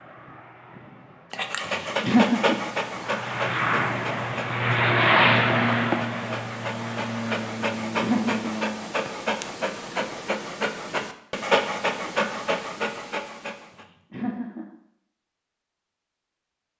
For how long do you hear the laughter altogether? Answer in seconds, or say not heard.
2 s.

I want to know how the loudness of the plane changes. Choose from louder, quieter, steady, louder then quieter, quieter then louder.
louder then quieter.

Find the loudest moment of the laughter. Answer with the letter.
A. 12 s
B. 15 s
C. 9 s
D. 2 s
D.